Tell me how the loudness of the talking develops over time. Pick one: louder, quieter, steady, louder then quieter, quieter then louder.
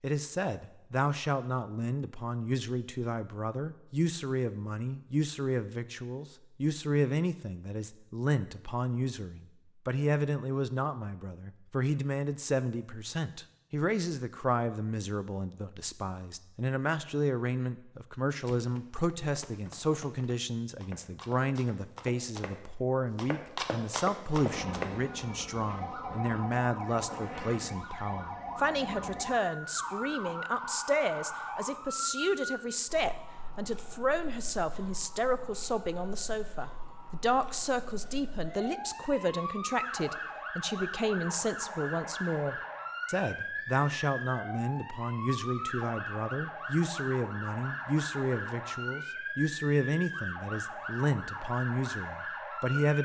steady.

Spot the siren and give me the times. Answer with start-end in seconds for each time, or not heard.
24.3-53.0.